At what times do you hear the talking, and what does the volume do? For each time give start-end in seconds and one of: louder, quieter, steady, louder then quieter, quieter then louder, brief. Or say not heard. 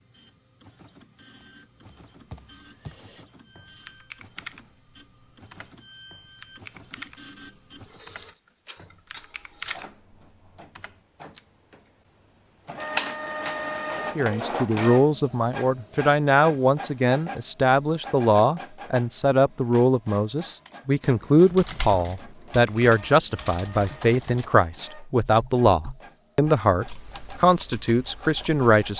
14.2-28.9 steady.